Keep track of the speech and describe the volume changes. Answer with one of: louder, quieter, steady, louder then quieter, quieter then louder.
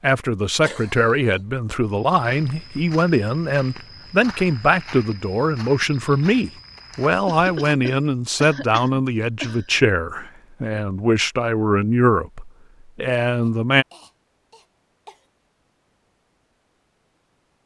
steady.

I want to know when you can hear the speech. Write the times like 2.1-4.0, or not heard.
0.0-13.8.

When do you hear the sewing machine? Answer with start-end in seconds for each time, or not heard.
not heard.